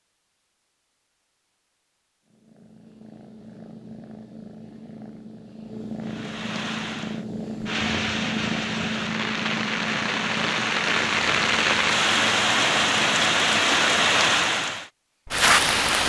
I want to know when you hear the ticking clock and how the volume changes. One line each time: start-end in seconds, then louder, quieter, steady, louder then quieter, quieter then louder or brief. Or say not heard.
not heard.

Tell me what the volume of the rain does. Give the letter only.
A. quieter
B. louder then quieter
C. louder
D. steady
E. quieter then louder
C.